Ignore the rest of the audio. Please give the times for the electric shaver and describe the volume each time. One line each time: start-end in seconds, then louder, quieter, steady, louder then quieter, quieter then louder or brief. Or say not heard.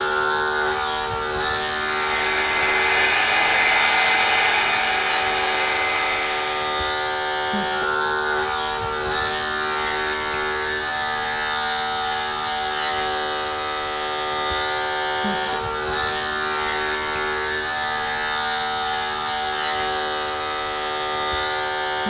0.0-22.0 steady.